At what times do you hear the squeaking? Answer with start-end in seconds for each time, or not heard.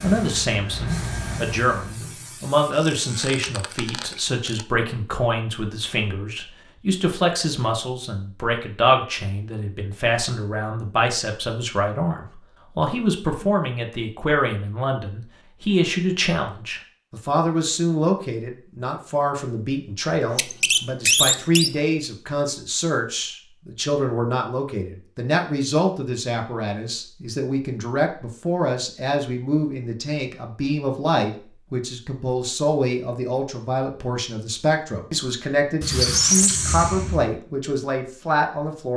2.8-4.6, 20.3-21.7, 35.8-37.4.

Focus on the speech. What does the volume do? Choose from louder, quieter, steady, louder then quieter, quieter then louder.
steady.